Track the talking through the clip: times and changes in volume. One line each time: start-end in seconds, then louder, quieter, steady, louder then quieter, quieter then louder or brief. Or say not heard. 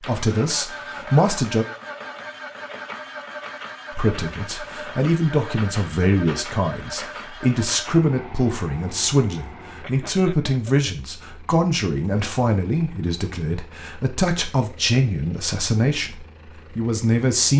0.0-1.6 brief
4.0-17.5 steady.